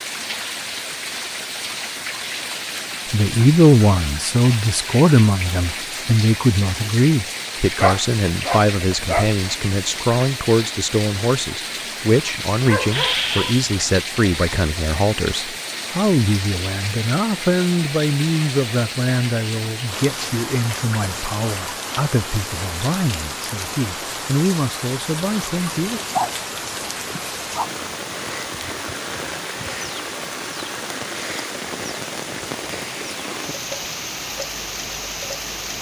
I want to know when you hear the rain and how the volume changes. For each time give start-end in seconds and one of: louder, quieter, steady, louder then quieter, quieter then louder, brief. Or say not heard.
0.0-35.7 steady.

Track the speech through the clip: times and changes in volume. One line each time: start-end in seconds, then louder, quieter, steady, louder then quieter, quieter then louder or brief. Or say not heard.
3.1-26.0 quieter.